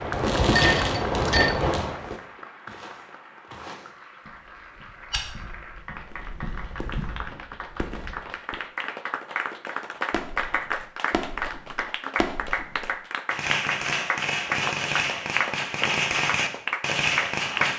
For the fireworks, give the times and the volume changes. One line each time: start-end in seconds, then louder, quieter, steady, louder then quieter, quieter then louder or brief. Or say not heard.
0.0-2.1 brief
6.0-8.6 brief
10.1-17.7 louder.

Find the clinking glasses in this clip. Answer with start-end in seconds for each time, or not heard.
0.5-1.6.